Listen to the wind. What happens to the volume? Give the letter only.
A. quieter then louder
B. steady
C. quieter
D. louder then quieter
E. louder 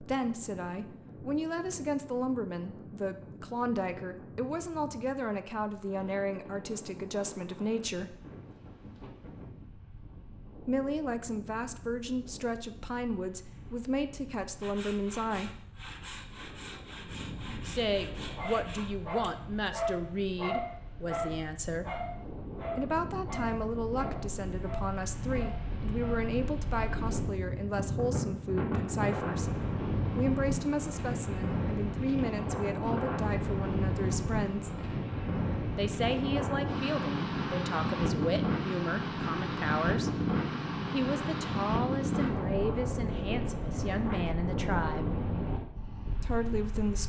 E.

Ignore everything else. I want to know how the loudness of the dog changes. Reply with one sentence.
The loudness of the dog goes down.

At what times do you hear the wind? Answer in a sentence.
The wind can be heard from 0.0 to 47.0 s.